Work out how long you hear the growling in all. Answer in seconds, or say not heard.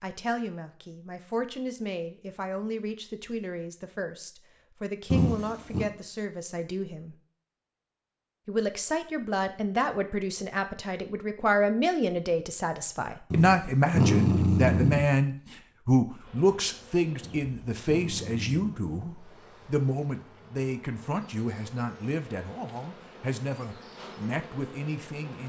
4 s.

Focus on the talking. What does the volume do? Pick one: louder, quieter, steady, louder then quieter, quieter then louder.
louder then quieter.